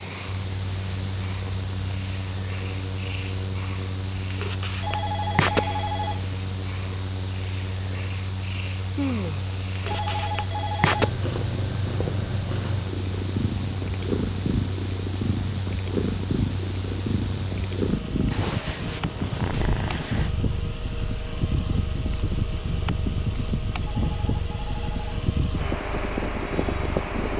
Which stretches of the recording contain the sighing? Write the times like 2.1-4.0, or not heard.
8.9-9.6.